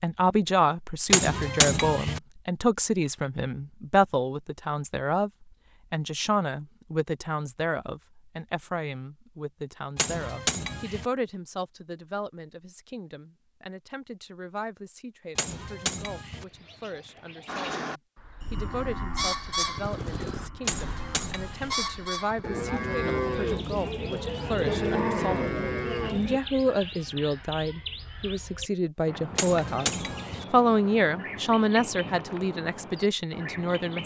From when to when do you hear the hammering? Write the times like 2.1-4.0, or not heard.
1.1-2.2, 9.9-11.1, 15.3-16.4, 20.6-21.8, 29.4-30.4.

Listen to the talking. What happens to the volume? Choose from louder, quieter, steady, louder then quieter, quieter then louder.
quieter then louder.